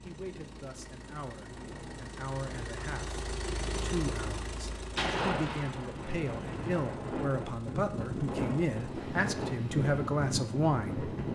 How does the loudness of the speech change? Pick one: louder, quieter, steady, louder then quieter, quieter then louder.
louder.